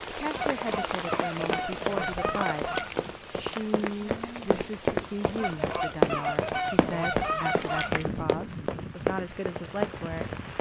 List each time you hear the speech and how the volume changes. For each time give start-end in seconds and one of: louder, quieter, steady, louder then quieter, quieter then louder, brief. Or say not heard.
0.1-10.3 steady.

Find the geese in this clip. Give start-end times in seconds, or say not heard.
0.3-3.1, 5.3-8.1.